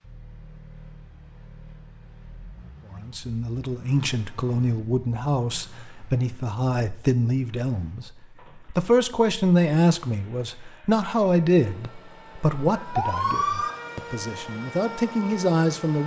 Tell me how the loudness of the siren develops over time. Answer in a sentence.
The volume of the siren goes up, then down.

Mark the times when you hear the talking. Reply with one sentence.
You can hear the talking from 2.9 to 8.1 s and from 8.7 to 16.0 s.